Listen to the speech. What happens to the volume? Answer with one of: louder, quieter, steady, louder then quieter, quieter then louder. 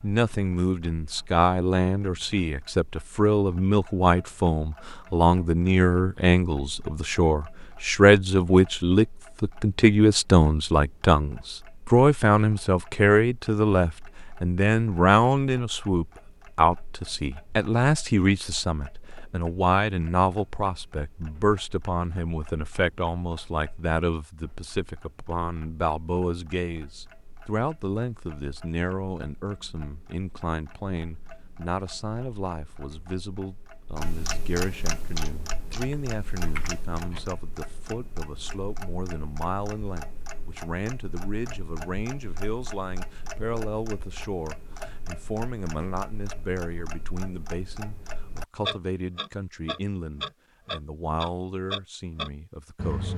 quieter.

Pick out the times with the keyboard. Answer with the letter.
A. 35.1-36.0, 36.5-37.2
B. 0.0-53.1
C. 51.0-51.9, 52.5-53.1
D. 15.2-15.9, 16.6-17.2
A.